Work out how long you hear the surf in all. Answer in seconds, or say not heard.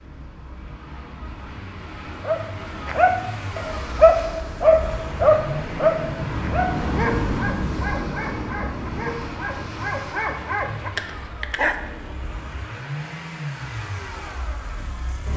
15 s.